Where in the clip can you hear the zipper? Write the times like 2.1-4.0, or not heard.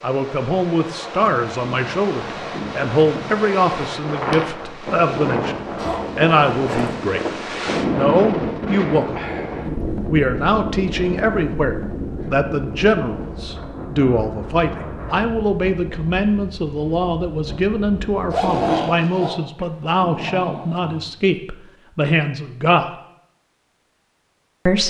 5.8-7.0, 18.3-19.3.